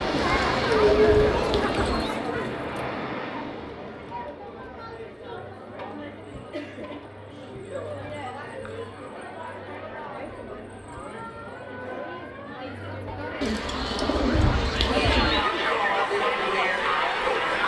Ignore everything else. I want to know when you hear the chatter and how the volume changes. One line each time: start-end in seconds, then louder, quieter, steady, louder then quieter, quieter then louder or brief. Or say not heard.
0.0-17.6 quieter then louder.